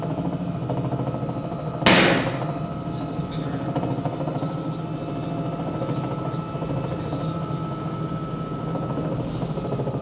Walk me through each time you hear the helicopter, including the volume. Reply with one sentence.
The helicopter can be heard from 0.0 to 9.9 s, at a steady volume.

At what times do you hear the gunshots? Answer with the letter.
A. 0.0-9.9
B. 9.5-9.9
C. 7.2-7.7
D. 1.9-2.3
D.